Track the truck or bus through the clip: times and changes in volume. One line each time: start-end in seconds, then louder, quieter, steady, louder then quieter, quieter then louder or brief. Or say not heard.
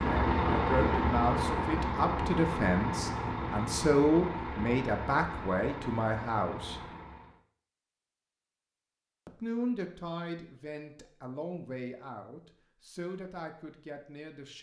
0.0-7.4 quieter.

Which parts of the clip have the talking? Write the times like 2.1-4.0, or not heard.
0.1-6.8, 9.2-14.5.